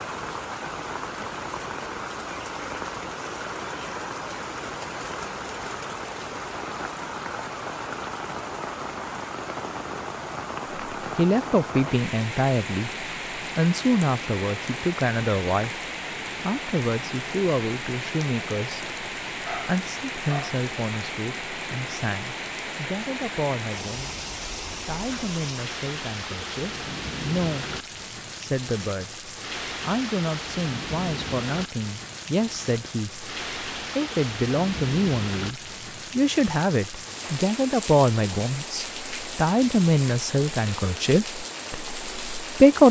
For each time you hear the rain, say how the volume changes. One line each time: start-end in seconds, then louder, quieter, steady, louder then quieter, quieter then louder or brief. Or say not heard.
0.0-42.8 steady.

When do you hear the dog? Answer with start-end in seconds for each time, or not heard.
19.4-20.6.